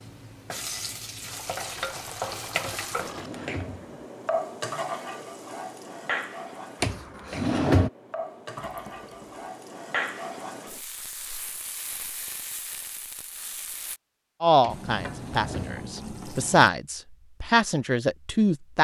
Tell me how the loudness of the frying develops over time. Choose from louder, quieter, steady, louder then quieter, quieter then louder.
quieter.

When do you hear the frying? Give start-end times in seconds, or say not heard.
0.0-14.0.